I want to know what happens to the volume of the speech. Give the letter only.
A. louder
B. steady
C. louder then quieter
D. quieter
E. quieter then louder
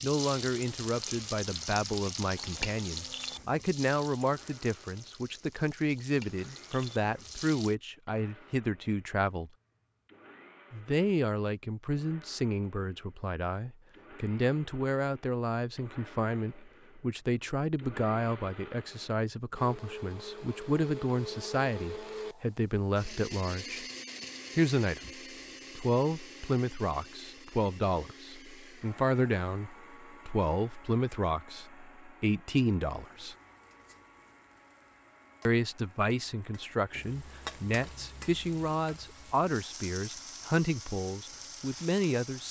B.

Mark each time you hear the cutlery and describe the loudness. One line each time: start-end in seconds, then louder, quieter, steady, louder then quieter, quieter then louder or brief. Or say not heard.
not heard.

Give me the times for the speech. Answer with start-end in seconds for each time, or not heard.
0.0-9.5, 10.7-23.9, 24.6-33.4, 35.5-42.4.